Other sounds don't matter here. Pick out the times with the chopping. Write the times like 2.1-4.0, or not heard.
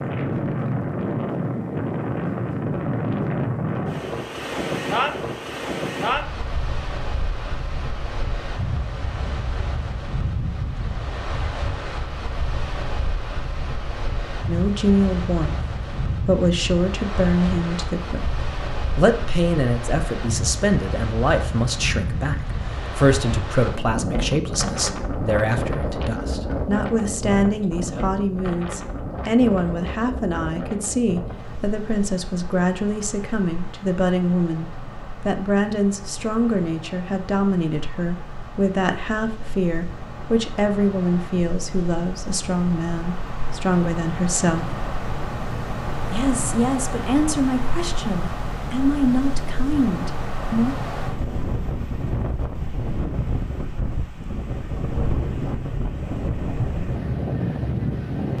not heard.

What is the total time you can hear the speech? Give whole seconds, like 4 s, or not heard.
34 s.